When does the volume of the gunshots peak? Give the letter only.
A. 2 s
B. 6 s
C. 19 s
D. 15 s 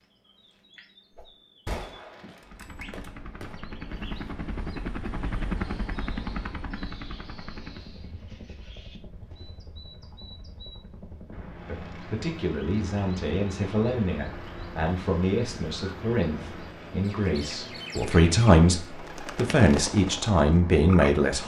A.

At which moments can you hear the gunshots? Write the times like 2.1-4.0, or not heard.
1.6-3.5.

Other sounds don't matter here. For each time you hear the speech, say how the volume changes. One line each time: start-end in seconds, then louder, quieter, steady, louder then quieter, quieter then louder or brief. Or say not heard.
11.7-21.4 louder.